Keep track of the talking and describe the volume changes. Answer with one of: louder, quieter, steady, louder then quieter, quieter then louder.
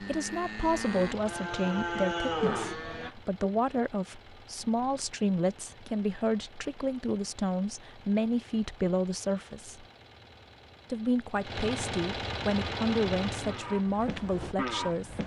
steady.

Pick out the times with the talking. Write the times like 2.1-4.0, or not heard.
0.0-9.8, 10.9-15.2.